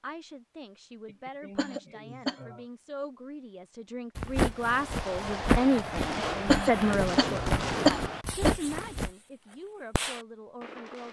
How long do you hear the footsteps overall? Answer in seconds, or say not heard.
5 s.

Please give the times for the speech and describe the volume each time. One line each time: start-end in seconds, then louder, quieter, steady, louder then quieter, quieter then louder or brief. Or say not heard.
0.0-11.0 louder then quieter.